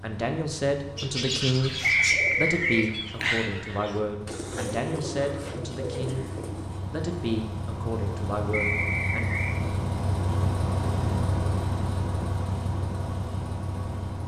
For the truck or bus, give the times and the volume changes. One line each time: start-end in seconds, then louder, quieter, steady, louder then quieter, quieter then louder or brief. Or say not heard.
0.0-14.2 louder.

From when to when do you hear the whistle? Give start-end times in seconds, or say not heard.
1.8-2.9, 8.5-9.6.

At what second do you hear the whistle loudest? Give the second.
2 s.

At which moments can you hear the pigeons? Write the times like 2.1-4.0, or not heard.
0.9-6.8.